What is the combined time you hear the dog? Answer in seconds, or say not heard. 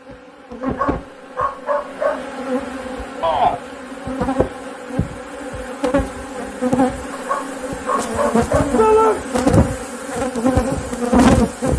3 s.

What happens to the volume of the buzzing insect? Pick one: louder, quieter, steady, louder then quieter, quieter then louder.
louder.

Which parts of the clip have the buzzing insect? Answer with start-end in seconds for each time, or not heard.
0.0-11.7.